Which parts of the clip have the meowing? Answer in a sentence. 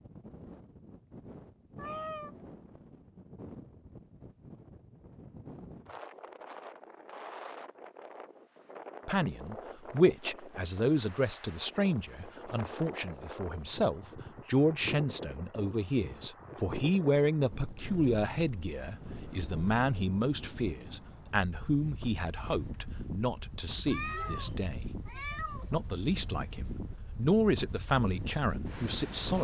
You can hear the meowing from 1.8 to 2.4 s and from 23.9 to 25.8 s.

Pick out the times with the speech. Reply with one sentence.
The speech can be heard from 9.1 to 24.9 s and from 25.7 to 29.3 s.